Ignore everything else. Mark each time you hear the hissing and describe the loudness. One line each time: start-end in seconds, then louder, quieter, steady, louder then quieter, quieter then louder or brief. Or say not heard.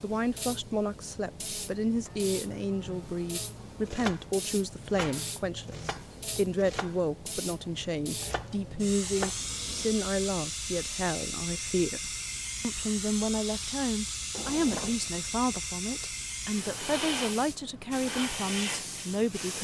0.0-19.5 louder.